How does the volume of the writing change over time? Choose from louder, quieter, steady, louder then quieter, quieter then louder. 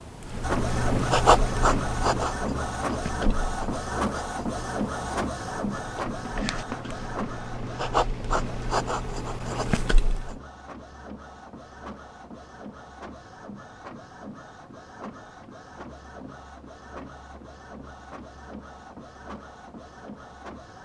quieter then louder.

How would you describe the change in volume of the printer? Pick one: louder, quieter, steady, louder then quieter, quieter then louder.
quieter.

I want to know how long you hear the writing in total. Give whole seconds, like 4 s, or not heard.
10 s.